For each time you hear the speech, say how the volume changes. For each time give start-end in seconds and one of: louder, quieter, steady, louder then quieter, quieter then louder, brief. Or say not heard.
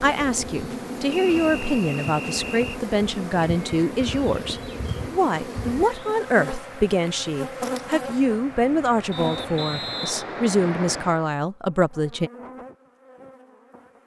0.0-12.3 steady.